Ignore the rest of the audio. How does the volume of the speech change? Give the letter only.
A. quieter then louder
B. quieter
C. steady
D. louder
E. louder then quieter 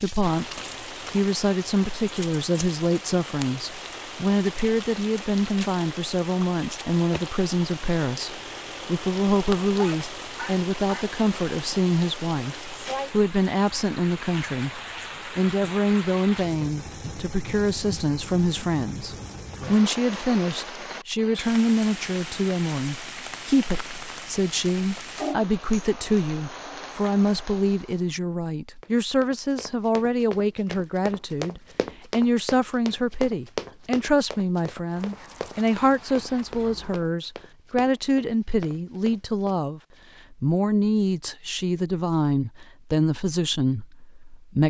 C.